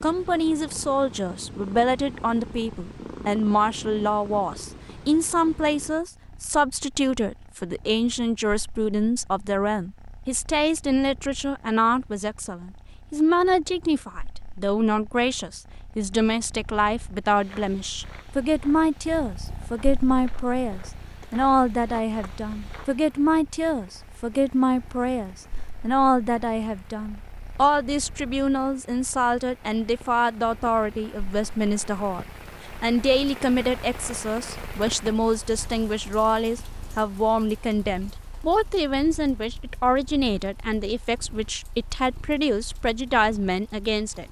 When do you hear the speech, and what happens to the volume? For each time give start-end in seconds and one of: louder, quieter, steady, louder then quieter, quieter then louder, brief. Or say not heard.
0.0-44.2 steady.